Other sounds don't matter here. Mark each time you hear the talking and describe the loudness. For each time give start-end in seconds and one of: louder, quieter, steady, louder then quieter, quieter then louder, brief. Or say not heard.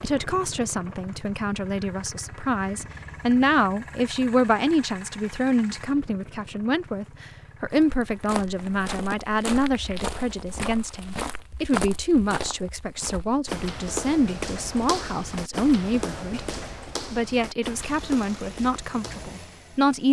0.0-16.4 steady
17.1-20.0 brief.